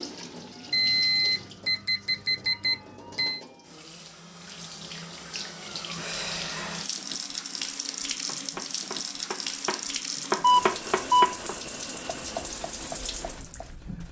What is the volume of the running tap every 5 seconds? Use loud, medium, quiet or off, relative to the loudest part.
medium, loud, loud.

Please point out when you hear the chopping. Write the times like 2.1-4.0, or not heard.
8.2-13.7.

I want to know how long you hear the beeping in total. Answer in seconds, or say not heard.
4 s.